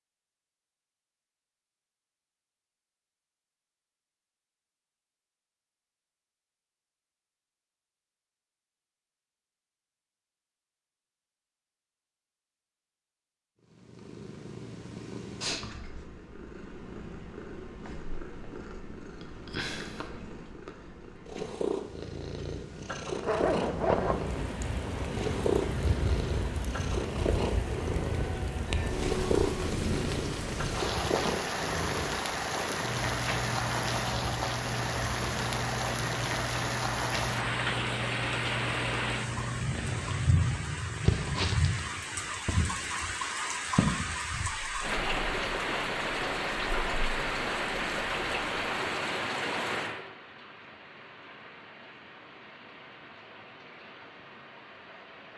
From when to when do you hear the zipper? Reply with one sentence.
You can hear the zipper from 23.2 to 24.1 s.